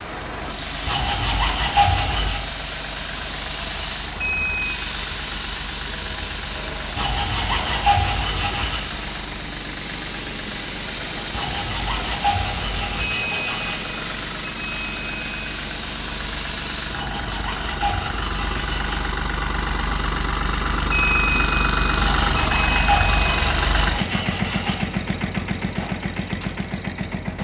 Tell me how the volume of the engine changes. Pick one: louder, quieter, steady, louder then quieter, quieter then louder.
louder.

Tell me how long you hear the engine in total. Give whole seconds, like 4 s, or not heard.
27 s.